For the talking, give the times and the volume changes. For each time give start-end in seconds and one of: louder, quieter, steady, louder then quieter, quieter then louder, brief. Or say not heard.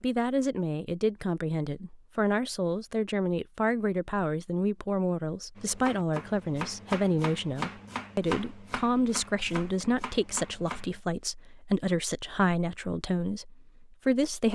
0.0-14.4 steady.